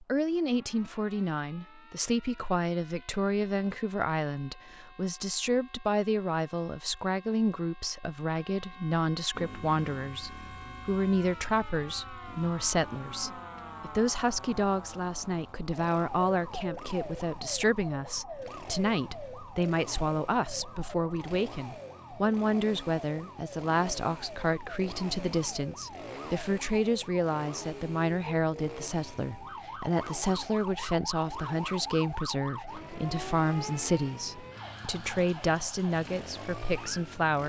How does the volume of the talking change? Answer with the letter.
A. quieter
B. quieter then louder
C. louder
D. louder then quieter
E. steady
E.